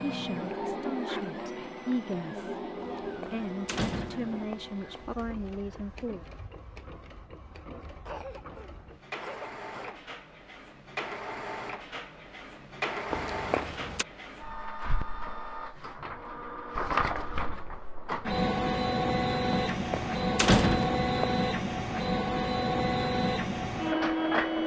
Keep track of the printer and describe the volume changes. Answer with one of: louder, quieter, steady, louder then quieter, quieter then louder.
quieter then louder.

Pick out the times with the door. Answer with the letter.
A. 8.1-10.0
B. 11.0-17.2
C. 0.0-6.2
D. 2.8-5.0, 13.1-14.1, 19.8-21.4
D.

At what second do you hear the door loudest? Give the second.
21 s.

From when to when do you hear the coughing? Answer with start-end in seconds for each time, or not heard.
8.1-10.0.